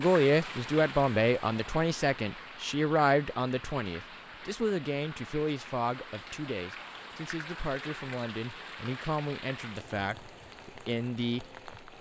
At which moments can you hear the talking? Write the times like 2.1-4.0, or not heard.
0.0-11.9.